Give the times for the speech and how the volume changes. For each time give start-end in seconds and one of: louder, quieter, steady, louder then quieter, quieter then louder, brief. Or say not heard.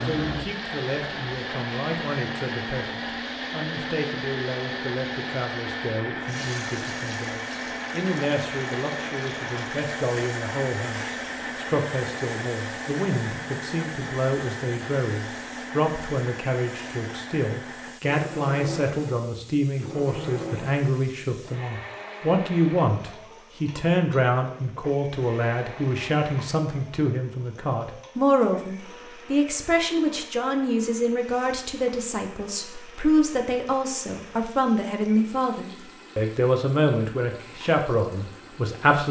0.0-39.0 louder.